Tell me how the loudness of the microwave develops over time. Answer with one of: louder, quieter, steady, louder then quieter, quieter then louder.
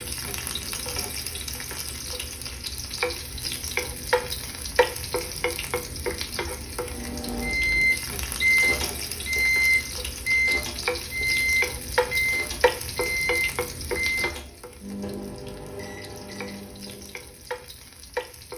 quieter.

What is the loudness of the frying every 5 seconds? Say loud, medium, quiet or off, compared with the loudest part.
loud, loud, loud, medium.